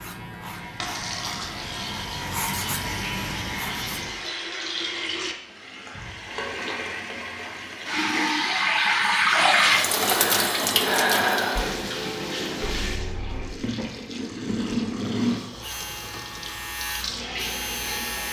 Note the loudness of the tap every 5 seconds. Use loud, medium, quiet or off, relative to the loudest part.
medium, loud, loud, medium.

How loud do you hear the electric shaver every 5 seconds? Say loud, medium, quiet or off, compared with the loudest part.
loud, off, off, loud.